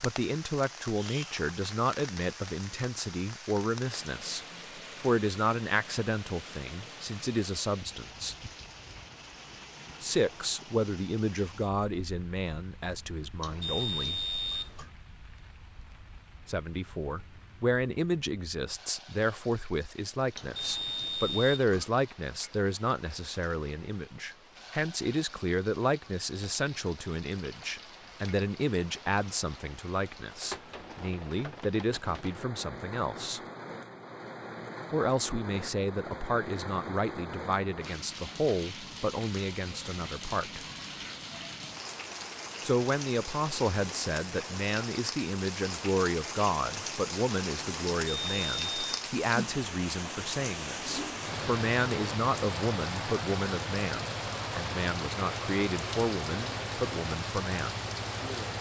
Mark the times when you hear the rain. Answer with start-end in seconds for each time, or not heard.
0.0-58.5.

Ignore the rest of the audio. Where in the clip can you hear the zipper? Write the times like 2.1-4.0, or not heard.
not heard.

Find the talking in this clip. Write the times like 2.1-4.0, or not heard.
0.0-8.3, 10.0-14.2, 16.4-33.4, 34.9-40.6, 42.6-57.8.